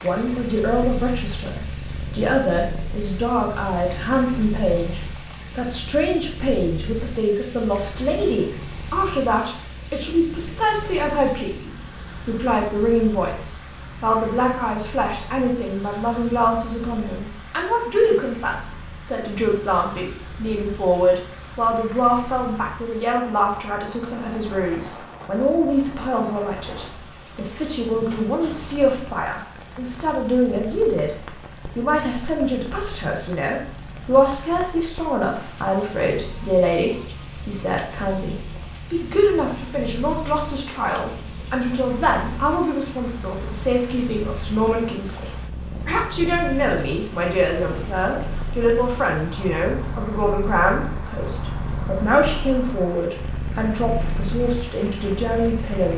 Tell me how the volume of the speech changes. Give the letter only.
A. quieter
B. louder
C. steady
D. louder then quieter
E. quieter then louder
C.